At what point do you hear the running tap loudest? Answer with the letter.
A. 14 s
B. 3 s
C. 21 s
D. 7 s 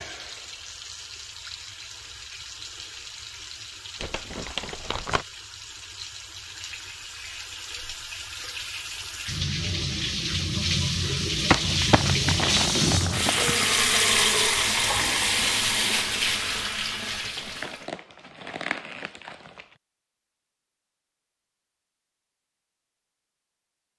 A.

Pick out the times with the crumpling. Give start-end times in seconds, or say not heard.
4.0-5.2, 11.5-13.7, 17.2-19.6.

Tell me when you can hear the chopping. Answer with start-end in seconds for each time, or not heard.
not heard.